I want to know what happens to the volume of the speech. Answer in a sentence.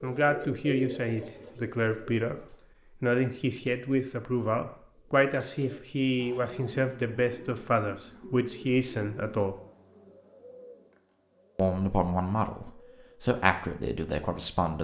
The volume of the speech stays about the same.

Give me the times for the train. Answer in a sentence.
The train can't be heard in this clip.